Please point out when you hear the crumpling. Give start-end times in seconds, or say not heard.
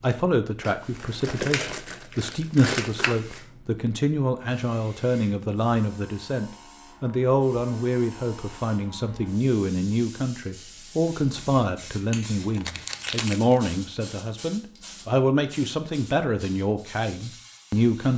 0.6-3.4, 12.4-13.6.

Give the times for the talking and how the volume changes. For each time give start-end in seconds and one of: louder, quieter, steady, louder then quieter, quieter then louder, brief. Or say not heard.
0.0-18.1 steady.